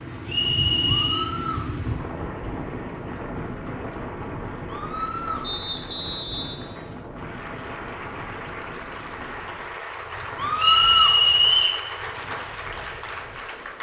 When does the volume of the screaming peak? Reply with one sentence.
The volume of the screaming peaks at 11 seconds.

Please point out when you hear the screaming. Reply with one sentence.
The screaming can be heard from 1.1 to 1.6 s, from 4.7 to 5.5 s and from 10.3 to 11.2 s.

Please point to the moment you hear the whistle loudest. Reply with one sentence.
The volume of the whistle peaks at 11 seconds.